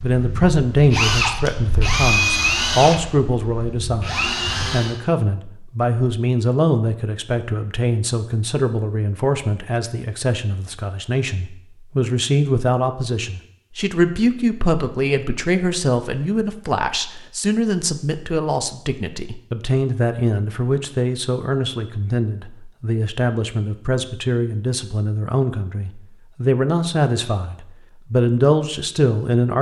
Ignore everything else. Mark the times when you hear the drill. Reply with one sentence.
You can hear the drill from 0.0 to 5.0 s.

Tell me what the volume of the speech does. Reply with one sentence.
The loudness of the speech stays about the same.